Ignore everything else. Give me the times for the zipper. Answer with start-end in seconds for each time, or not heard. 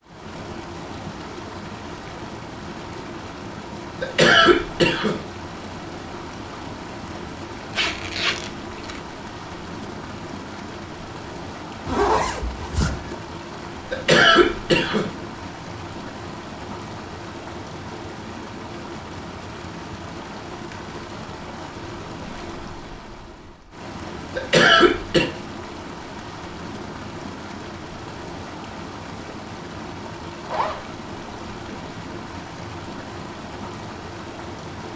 7.7-9.0, 11.8-13.2, 30.4-30.9.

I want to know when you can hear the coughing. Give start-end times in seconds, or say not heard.
4.0-5.2, 13.9-15.1, 24.4-25.2.